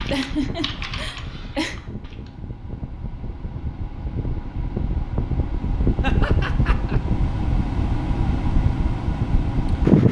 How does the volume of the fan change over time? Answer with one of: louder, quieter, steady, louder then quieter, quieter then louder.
louder.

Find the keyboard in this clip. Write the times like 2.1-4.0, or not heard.
0.0-2.4.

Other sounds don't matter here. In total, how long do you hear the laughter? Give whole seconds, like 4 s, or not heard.
3 s.